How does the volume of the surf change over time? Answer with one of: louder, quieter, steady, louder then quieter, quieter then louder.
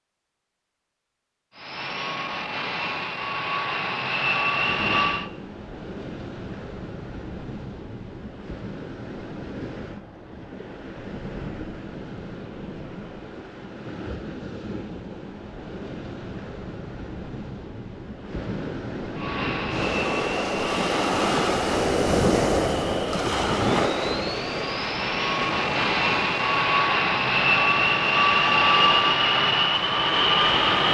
louder then quieter.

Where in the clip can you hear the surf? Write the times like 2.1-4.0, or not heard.
4.6-30.8.